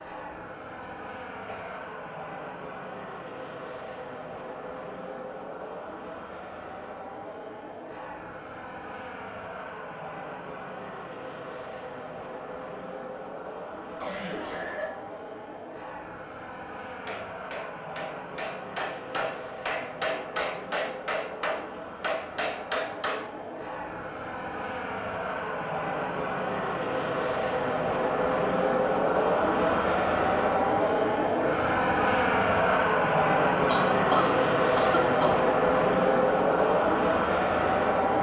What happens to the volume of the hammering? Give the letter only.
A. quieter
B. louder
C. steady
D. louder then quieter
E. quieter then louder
B.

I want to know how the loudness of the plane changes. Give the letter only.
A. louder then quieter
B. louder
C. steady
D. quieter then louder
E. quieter
B.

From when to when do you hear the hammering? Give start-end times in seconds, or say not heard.
16.9-23.3.